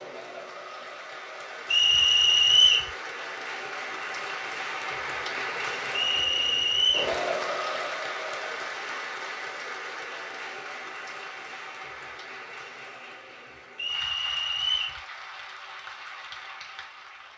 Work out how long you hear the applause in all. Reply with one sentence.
You can hear the applause for 17 seconds altogether.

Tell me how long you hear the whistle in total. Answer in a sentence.
The whistle can be heard for 4 seconds in total.